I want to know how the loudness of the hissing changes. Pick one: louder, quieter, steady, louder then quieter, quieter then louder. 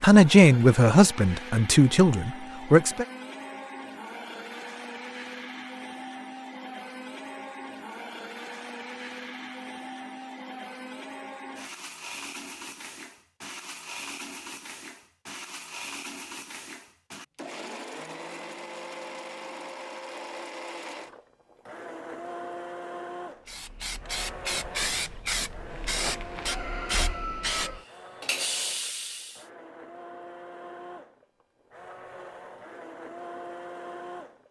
steady.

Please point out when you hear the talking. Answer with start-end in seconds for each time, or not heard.
0.0-3.0.